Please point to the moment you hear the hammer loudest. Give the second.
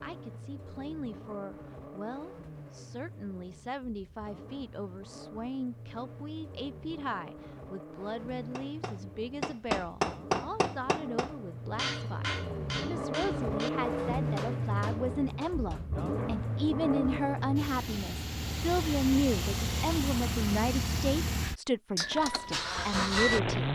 10 s.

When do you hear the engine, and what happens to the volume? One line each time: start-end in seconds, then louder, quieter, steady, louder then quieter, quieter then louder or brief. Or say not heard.
0.0-23.7 louder.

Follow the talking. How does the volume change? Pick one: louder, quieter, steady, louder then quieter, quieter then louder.
louder.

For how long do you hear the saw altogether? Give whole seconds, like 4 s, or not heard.
not heard.